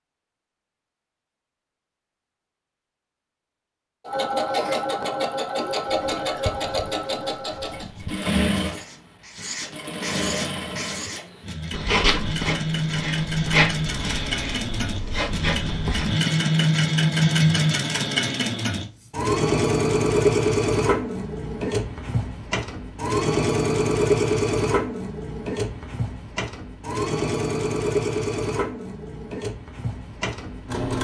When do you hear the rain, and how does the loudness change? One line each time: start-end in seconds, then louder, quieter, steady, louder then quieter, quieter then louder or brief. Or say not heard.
not heard.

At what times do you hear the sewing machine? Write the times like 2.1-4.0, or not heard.
4.0-31.0.